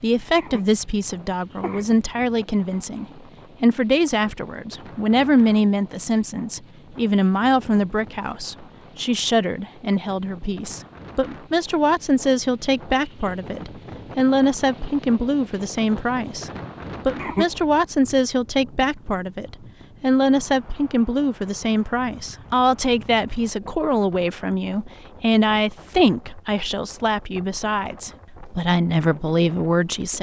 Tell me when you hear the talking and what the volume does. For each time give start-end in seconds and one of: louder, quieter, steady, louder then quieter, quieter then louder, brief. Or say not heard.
0.0-30.1 steady.